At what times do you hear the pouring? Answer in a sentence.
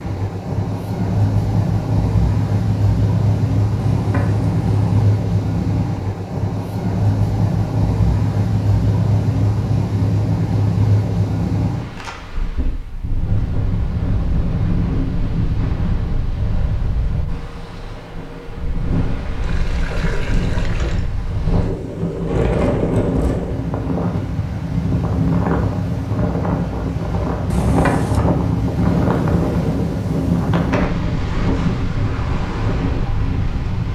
The pouring can be heard from 3.8 to 5.1 s, from 19.4 to 21.1 s and from 27.5 to 28.2 s.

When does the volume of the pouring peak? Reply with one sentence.
The volume of the pouring peaks at 28 seconds.